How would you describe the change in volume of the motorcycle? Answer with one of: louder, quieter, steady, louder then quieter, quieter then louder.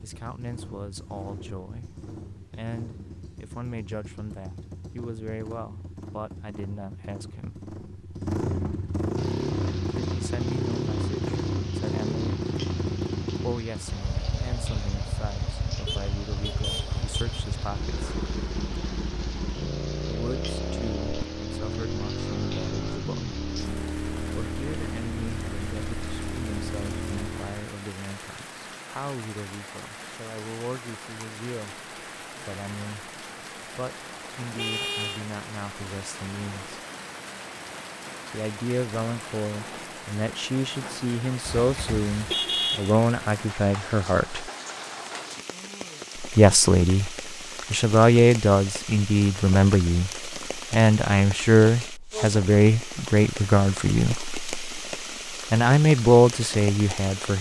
louder.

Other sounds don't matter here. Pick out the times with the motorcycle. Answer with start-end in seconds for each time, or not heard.
0.0-27.8.